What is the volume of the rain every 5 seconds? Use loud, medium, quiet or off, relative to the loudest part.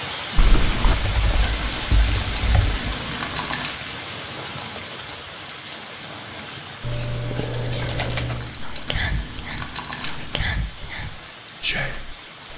loud, medium, medium.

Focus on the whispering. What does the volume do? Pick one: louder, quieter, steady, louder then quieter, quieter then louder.
quieter then louder.